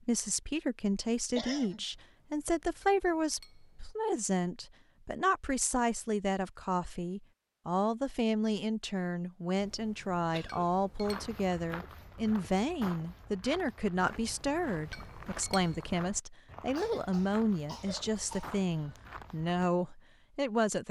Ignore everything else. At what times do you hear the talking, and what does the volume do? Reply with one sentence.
You can hear the talking from 0.0 to 20.8 s, at a steady volume.